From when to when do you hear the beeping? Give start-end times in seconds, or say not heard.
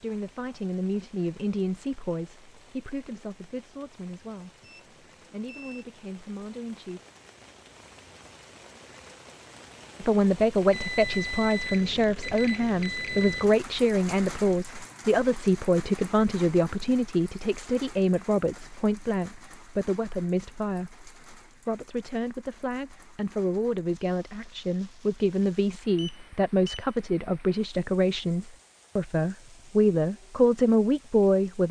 4.6-5.8, 10.7-13.4, 25.9-27.1.